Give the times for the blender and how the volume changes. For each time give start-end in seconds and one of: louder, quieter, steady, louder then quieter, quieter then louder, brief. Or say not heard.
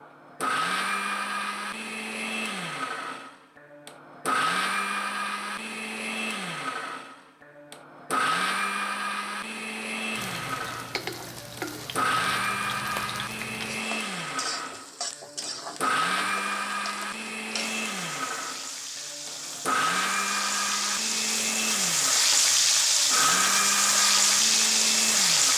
0.0-25.5 steady.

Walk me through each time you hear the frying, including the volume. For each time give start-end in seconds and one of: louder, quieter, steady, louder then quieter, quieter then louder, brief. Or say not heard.
10.2-25.5 louder.